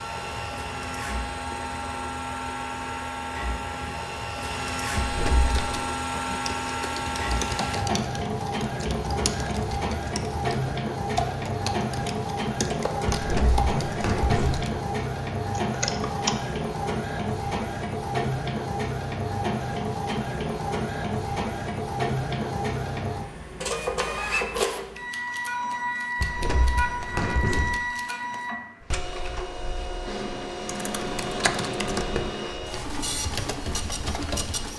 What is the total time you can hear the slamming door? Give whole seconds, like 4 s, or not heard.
4 s.